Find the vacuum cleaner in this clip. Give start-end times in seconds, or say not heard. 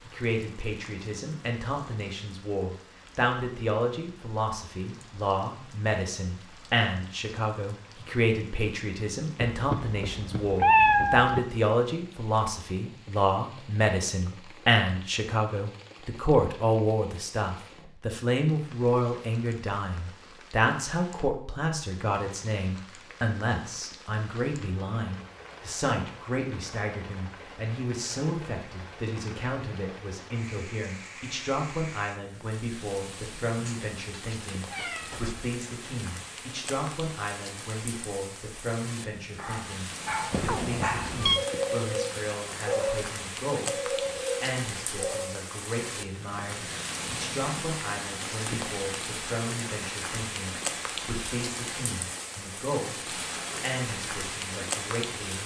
not heard.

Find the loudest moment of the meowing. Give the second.
11 s.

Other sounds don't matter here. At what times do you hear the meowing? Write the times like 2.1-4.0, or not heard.
9.4-11.4, 33.6-35.4, 40.3-41.4.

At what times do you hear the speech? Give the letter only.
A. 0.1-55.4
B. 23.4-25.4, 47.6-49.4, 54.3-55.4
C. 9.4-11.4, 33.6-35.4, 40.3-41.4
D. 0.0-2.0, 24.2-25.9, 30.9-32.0
A.